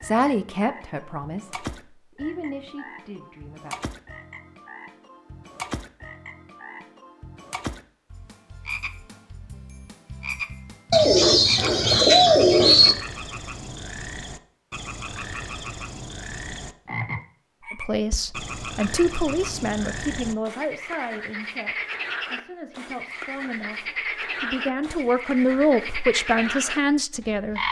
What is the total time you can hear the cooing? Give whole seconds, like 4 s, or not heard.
2 s.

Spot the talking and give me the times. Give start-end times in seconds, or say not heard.
0.0-3.8, 17.7-27.6.